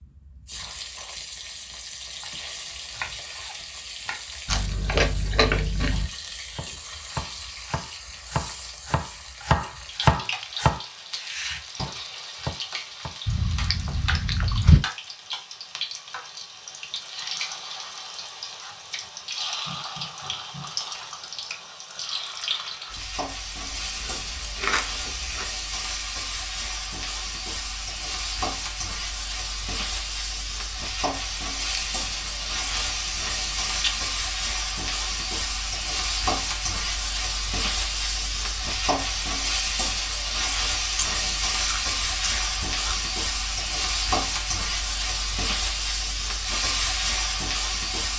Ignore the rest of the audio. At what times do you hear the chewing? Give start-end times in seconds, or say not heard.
4.5-6.0, 13.2-14.8, 23.6-25.4, 31.7-34.0, 41.0-43.0.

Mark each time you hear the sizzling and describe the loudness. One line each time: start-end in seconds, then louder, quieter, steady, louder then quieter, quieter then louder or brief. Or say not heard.
0.0-48.1 louder.